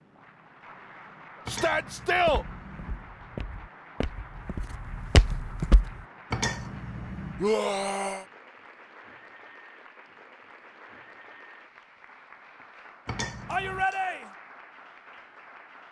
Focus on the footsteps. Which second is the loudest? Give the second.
5 s.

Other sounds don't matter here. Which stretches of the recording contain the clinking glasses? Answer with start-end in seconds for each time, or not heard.
1.4-3.1, 6.3-7.5, 13.1-13.8.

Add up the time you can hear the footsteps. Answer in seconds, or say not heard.
4 s.